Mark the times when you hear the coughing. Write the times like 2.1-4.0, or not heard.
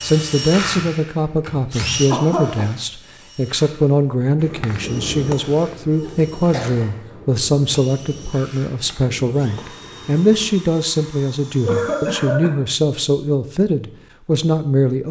2.0-2.6, 5.9-6.9, 11.7-12.6.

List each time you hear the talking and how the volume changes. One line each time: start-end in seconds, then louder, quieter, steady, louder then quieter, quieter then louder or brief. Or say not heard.
0.0-15.0 steady.